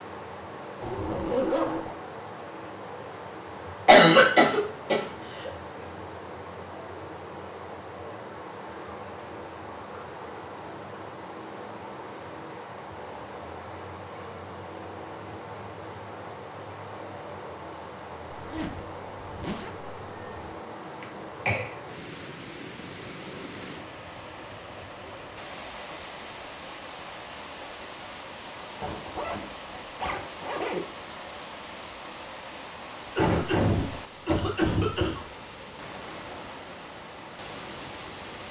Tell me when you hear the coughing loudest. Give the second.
4 s.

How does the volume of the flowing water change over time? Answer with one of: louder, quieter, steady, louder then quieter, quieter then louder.
steady.